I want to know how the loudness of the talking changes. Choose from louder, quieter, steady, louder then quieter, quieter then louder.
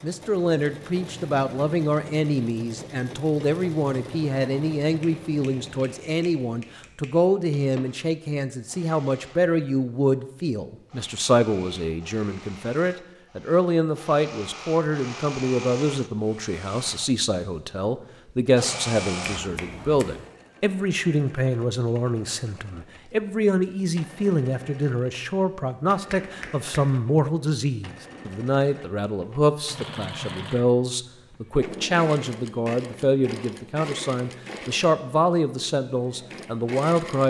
steady.